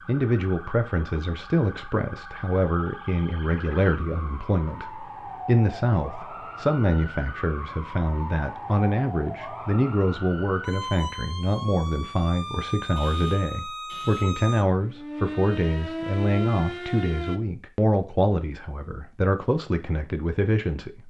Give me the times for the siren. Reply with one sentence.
The siren can be heard from 0.0 to 17.4 s.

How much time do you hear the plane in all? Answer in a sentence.
The plane can't be heard in this clip.